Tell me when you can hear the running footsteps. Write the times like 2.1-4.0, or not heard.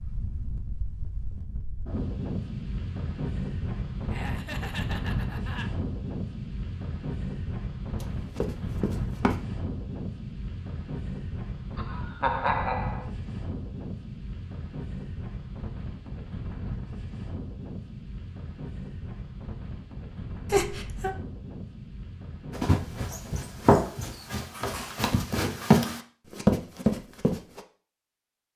8.0-9.4, 22.5-27.6.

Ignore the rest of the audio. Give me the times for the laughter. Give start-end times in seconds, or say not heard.
4.1-5.7, 11.8-13.1, 20.5-21.1.